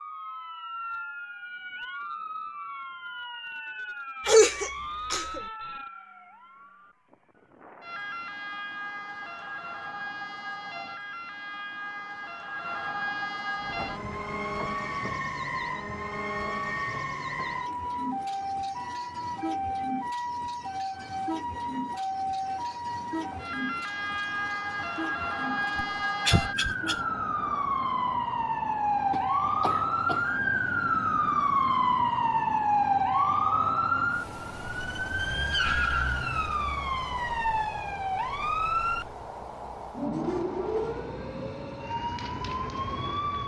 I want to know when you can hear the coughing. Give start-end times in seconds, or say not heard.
4.2-5.4, 25.8-27.0, 29.1-30.4.